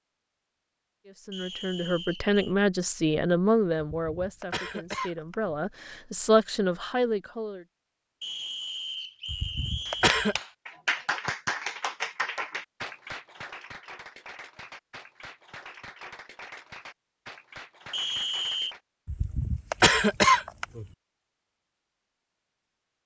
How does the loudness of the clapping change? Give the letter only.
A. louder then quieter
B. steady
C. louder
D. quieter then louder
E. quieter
E.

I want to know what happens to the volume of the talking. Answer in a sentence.
The volume of the talking goes down, then up.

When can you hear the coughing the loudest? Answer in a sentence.
The volume of the coughing peaks at 20 seconds.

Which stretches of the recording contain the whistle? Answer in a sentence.
You can hear the whistle from 1.3 to 2.5 s, from 8.2 to 10.2 s and from 17.9 to 18.8 s.